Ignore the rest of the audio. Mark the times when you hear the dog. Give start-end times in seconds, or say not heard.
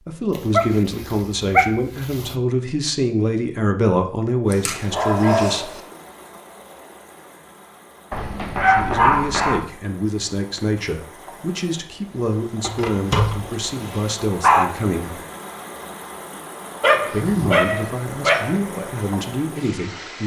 0.3-2.4, 4.5-5.8, 8.1-9.7, 12.6-14.7, 16.8-18.6.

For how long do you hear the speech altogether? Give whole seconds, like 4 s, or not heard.
15 s.